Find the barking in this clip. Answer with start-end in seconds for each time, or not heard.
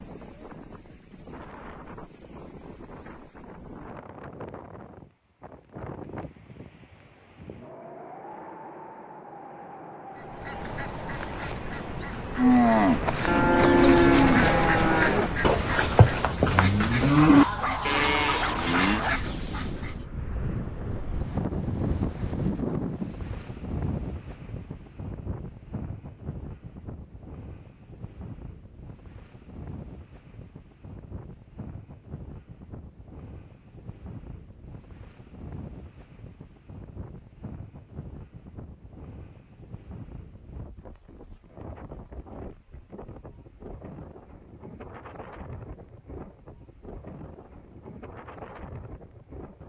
17.2-19.2.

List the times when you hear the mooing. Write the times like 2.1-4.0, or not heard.
12.3-19.0.